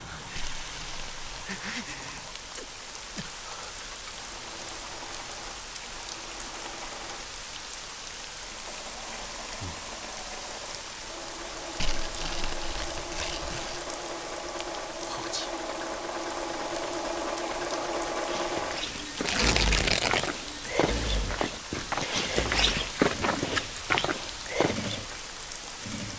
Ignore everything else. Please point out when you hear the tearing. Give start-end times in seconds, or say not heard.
0.3-1.3, 11.8-13.8, 19.2-20.3.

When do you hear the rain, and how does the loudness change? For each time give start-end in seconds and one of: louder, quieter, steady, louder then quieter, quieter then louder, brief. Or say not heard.
0.0-26.1 steady.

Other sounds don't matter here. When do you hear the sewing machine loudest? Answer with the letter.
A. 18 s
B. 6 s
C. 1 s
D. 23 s
A.